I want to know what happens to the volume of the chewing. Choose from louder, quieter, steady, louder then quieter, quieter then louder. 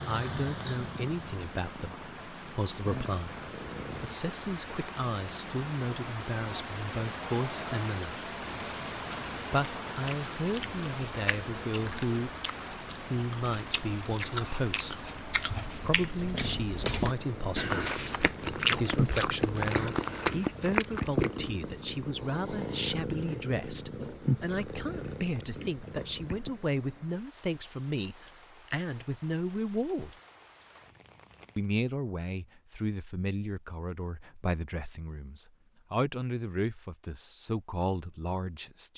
louder.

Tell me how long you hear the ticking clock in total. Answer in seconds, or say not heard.
not heard.